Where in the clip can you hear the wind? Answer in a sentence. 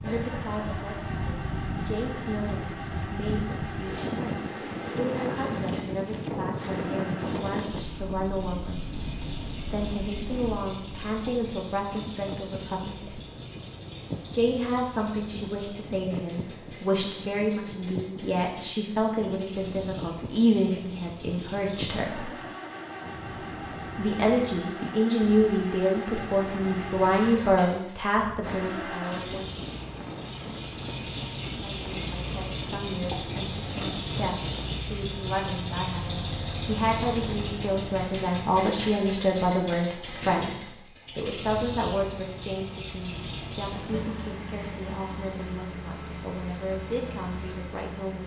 The wind can be heard from 0.0 to 34.9 s.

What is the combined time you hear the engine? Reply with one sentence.
The engine can be heard for 48 seconds in total.